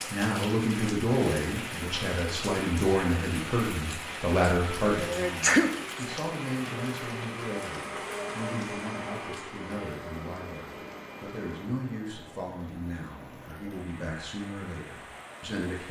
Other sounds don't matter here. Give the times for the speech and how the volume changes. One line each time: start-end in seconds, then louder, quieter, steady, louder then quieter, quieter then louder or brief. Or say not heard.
0.1-15.8 quieter.